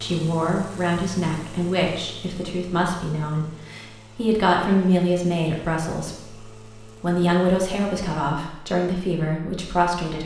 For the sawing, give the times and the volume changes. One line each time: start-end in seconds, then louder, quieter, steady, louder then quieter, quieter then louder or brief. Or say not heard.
not heard.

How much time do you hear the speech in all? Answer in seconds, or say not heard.
10 s.